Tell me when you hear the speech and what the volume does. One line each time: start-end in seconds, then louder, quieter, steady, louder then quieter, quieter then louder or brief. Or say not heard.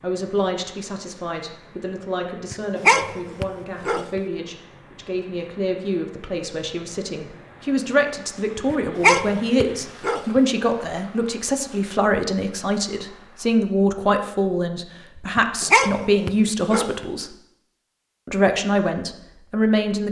0.0-17.4 louder
18.2-20.0 brief.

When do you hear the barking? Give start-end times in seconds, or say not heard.
2.5-4.2, 8.7-10.4, 15.3-17.1.